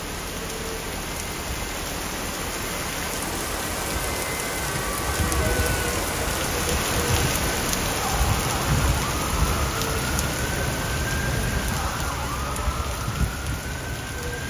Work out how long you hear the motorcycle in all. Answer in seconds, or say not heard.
not heard.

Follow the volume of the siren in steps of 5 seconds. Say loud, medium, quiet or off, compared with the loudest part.
medium, loud, loud.